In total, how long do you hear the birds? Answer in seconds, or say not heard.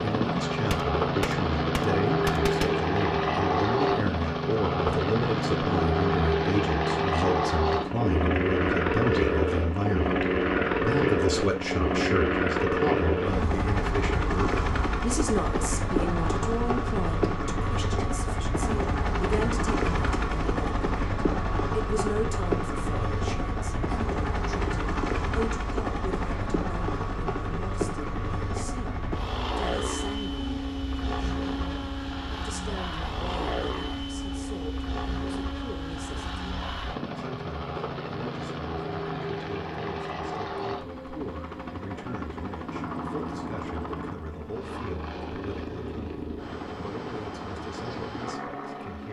not heard.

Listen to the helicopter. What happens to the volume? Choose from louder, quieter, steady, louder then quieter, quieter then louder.
quieter.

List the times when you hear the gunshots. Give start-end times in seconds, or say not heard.
0.7-2.7.